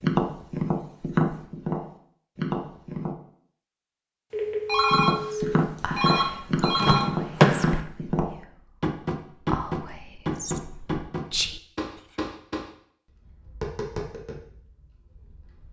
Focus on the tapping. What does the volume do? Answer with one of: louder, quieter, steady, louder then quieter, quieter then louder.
quieter.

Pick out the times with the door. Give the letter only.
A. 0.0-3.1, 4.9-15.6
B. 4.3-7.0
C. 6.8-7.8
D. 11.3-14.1
C.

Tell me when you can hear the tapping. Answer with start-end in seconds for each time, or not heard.
0.0-3.1, 4.9-15.6.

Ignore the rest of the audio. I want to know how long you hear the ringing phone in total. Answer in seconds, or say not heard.
3 s.